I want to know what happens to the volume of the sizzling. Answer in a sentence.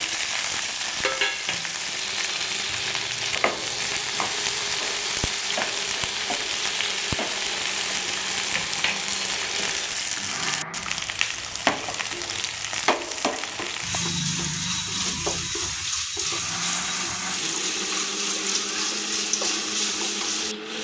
The volume of the sizzling stays about the same.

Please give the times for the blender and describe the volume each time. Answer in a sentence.
The blender can be heard from 1.8 to 11.1 s, at a steady volume; and from 16.1 to 20.7 s, at a steady volume.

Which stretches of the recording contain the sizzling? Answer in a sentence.
The sizzling can be heard from 0.0 to 20.7 s.